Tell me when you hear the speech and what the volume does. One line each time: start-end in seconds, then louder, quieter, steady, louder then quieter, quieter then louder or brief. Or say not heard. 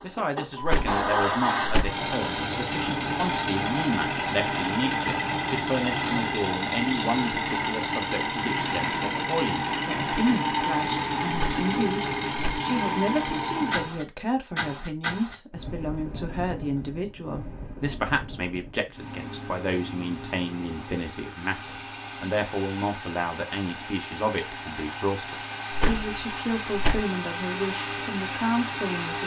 0.0-29.2 steady.